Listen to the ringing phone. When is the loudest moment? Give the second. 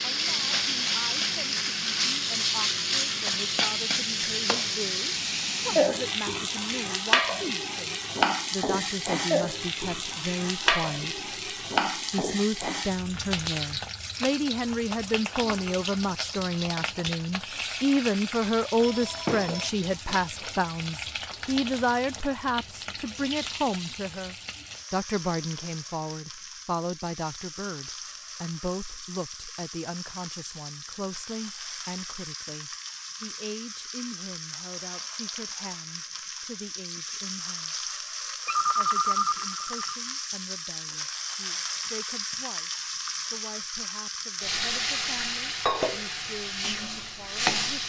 39 s.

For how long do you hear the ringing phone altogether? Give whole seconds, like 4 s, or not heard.
3 s.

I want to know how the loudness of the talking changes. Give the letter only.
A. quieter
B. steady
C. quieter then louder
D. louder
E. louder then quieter
E.